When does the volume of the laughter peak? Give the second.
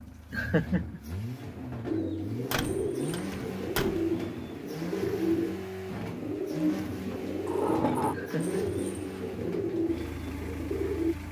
1 s.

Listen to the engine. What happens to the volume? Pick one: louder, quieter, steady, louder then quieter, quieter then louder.
steady.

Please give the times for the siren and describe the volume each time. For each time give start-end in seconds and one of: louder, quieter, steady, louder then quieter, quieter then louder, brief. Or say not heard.
not heard.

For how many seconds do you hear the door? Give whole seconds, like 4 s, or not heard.
2 s.